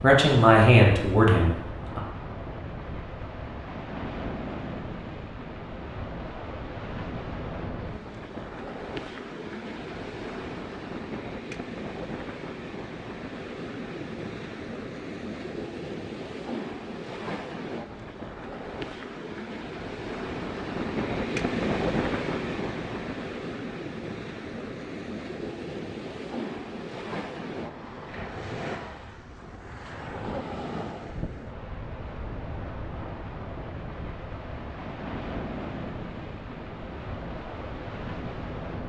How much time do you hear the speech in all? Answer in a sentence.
You can hear the speech for 2 seconds altogether.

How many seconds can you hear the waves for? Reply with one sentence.
The waves can be heard for 39 seconds in total.